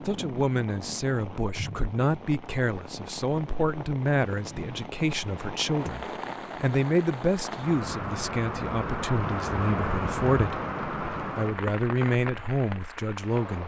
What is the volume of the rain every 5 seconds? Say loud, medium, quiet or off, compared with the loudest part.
medium, loud, loud.